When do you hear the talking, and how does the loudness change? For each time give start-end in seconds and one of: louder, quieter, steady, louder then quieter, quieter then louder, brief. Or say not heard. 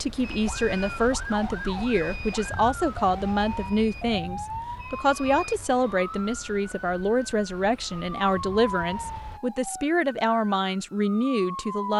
0.0-11.9 steady.